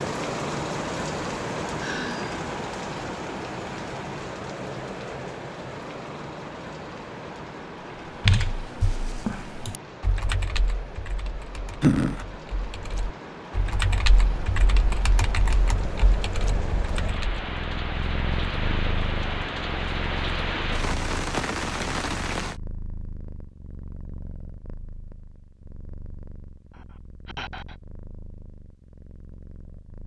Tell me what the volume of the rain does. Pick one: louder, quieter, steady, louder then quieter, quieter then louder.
quieter then louder.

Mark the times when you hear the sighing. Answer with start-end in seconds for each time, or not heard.
1.8-2.4, 11.8-12.2, 26.7-27.8.